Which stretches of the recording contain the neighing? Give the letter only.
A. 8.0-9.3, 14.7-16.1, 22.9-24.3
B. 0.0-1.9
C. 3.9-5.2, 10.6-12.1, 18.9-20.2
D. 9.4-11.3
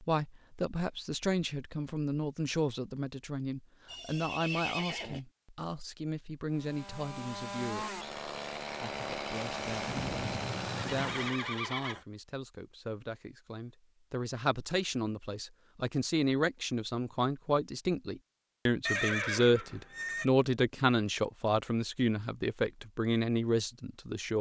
C.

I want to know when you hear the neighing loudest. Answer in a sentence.
The loudest moment of the neighing is at 19 seconds.